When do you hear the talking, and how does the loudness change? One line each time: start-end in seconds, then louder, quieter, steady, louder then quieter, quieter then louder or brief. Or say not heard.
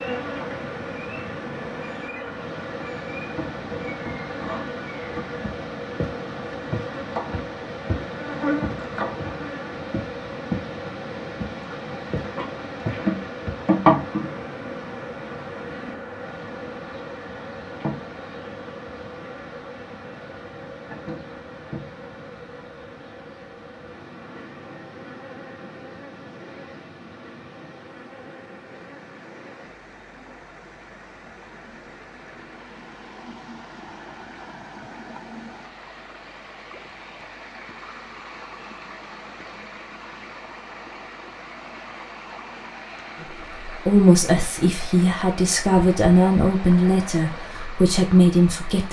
43.6-48.8 steady.